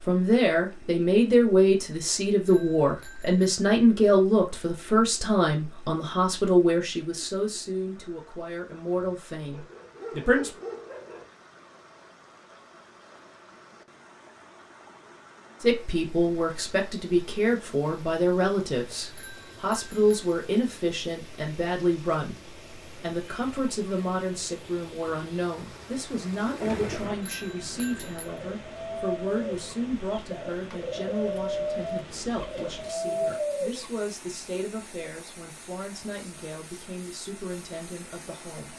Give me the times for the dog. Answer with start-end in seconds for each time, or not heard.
9.5-11.3.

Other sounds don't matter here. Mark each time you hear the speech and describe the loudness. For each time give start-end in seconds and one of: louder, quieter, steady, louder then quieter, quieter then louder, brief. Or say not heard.
0.1-10.5 quieter
15.6-38.7 quieter.